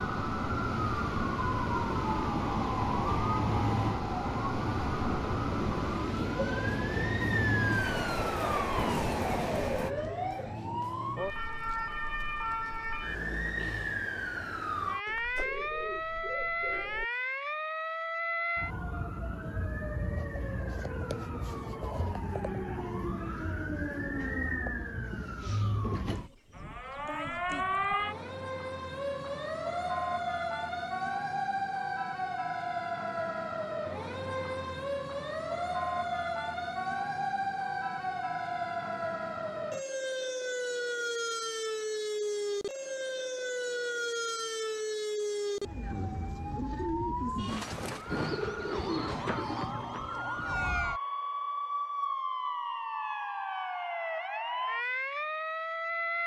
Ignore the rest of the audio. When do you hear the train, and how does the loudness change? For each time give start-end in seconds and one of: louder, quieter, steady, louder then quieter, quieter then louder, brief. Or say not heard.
0.0-9.9 steady.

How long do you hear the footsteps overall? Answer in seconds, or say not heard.
not heard.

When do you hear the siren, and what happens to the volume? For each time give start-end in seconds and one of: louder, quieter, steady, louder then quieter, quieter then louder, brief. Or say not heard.
0.0-56.2 steady.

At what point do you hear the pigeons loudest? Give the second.
49 s.